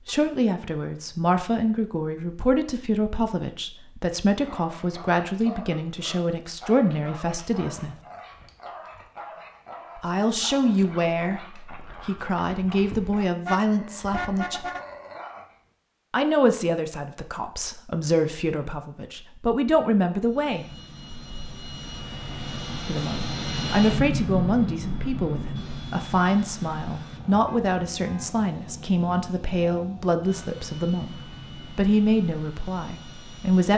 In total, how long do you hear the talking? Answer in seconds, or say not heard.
27 s.